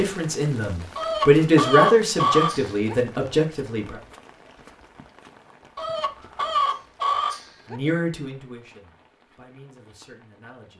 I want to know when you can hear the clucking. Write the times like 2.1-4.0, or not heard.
0.9-3.0, 5.8-7.8.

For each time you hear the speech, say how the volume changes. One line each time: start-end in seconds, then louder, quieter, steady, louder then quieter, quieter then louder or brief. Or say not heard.
0.0-4.0 louder then quieter
7.7-10.7 brief.